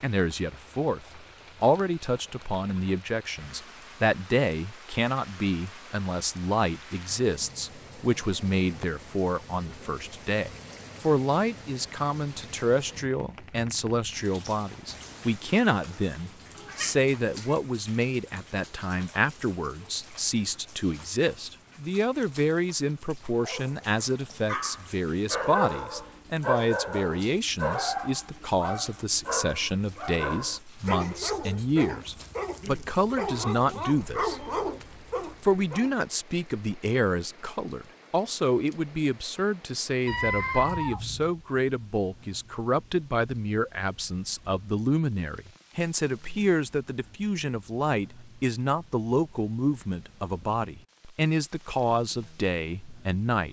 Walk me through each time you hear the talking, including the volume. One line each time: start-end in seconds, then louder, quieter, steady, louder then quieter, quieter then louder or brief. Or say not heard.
0.0-34.6 steady
35.4-53.4 steady.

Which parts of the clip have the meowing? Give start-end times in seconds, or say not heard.
15.9-17.6, 40.0-41.4.